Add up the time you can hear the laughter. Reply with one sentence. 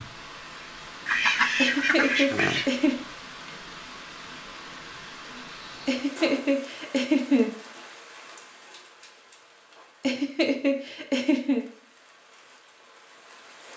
You can hear the laughter for 5 seconds altogether.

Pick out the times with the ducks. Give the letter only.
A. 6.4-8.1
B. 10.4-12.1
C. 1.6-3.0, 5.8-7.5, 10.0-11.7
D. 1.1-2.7
D.